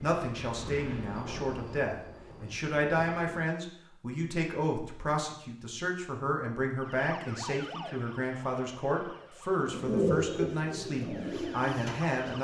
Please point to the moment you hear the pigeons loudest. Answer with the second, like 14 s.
10 s.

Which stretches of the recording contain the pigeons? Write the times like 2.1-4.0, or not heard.
9.6-12.2.